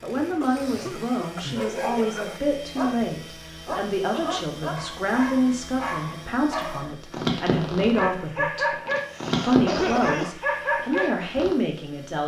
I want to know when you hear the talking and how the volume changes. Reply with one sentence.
You can hear the talking from 0.0 to 8.8 s, at a steady volume; and briefly from 9.4 to 12.2 s.